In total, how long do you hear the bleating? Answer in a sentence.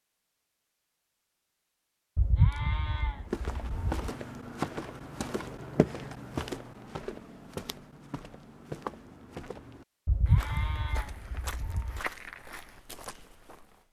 You can hear the bleating for 4 seconds altogether.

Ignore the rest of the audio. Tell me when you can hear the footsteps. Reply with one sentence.
You can hear the footsteps from 3.3 to 13.8 s.